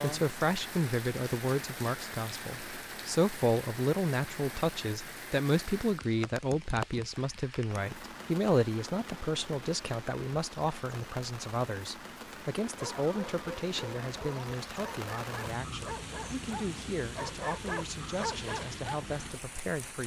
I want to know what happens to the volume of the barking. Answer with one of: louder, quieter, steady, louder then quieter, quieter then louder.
louder.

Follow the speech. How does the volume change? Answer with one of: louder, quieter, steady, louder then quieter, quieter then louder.
quieter.